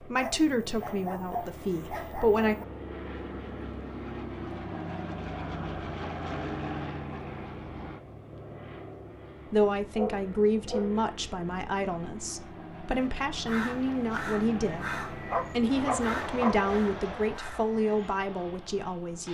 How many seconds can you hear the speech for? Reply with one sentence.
The speech can be heard for 12 seconds in total.